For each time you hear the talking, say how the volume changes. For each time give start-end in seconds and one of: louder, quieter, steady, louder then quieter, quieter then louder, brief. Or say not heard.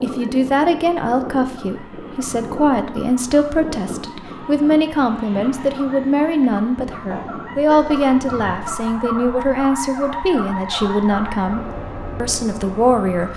0.0-13.3 steady.